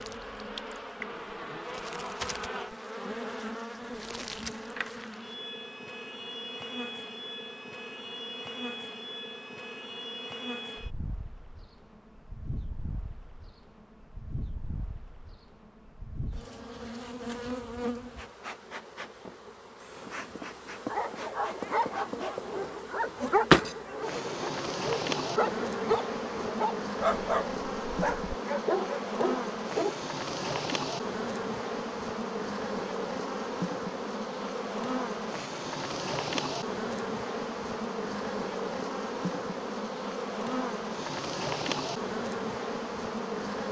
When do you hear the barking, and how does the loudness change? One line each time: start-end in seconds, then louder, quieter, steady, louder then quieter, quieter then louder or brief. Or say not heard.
20.9-30.0 steady.